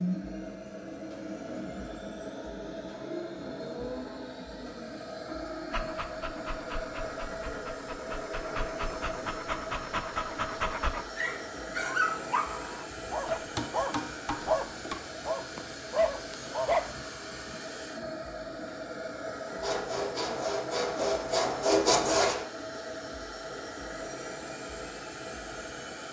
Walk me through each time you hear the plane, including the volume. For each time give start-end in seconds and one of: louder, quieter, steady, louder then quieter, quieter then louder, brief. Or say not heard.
0.0-26.0 steady.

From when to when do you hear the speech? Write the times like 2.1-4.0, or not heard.
not heard.